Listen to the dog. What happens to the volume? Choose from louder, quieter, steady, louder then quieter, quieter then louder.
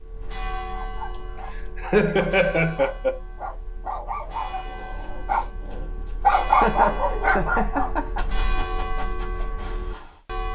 louder then quieter.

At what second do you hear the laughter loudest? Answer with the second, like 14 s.
2 s.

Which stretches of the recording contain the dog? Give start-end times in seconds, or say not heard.
0.7-10.2.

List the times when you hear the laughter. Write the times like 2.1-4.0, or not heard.
1.6-3.2, 6.5-8.2.